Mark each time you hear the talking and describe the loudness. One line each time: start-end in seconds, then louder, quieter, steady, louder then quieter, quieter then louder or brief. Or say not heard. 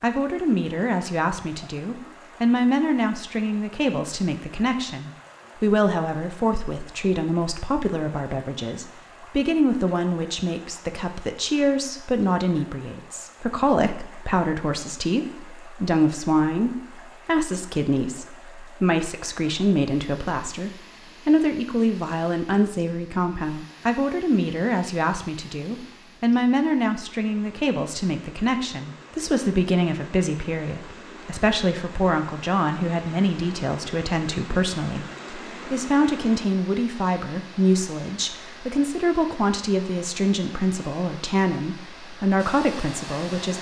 0.0-43.5 steady.